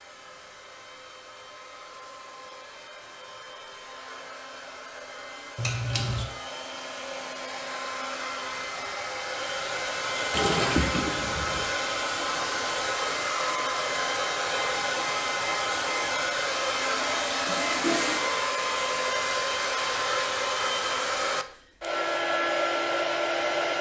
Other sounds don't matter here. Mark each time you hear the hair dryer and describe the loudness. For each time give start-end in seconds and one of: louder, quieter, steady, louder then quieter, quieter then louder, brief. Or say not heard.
0.0-23.7 louder.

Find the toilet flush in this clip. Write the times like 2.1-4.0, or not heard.
5.5-6.2, 10.3-11.7, 17.4-18.2.